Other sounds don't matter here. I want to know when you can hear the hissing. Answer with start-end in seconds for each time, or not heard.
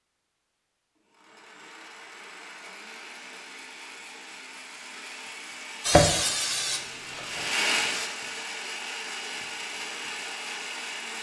5.8-8.1.